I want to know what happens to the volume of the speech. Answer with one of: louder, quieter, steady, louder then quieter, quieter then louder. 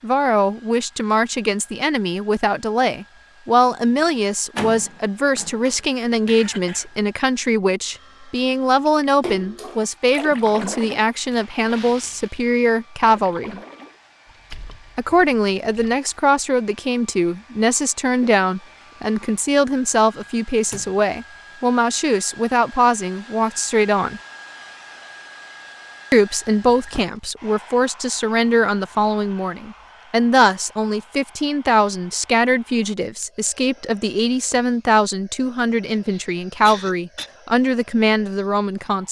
steady.